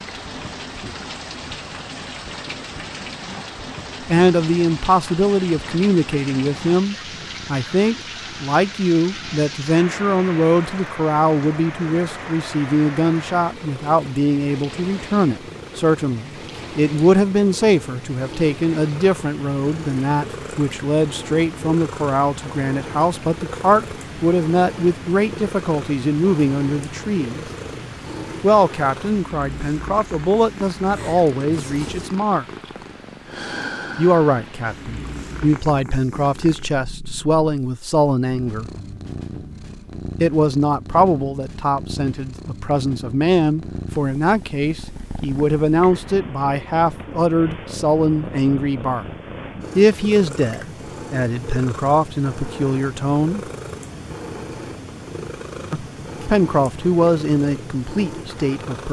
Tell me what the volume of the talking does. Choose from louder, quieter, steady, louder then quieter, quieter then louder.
steady.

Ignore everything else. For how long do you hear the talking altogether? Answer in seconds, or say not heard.
48 s.